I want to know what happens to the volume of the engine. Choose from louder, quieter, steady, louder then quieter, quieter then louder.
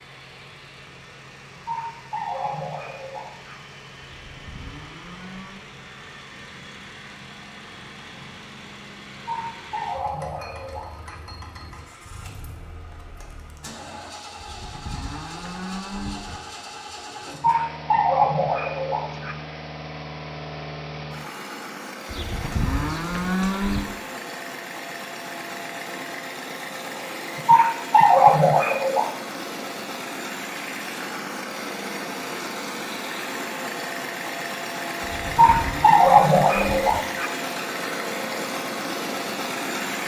louder.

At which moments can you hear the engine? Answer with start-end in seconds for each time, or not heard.
0.0-40.0.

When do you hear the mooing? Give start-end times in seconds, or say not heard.
4.2-5.6, 14.4-16.4, 22.1-23.9, 35.0-37.0.